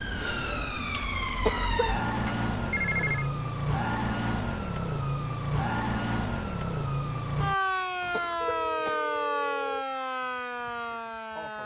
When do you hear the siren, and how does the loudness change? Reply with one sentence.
You can hear the siren from 0.0 to 11.6 s, at a steady volume.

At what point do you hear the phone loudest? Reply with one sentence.
The loudest moment of the phone is at 3 seconds.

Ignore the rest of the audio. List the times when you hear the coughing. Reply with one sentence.
You can hear the coughing from 1.4 to 2.2 s and from 8.1 to 9.1 s.